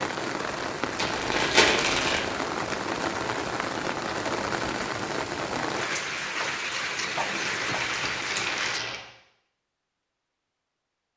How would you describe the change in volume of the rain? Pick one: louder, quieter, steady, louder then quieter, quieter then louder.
steady.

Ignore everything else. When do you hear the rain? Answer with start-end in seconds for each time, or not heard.
0.0-8.8.